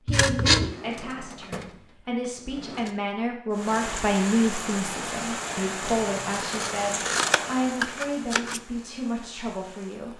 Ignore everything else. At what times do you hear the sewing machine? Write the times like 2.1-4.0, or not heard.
not heard.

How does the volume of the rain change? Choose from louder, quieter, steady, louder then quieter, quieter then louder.
quieter.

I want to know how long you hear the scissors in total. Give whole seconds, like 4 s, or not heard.
3 s.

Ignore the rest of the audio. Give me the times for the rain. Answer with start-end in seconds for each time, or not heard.
3.5-10.1.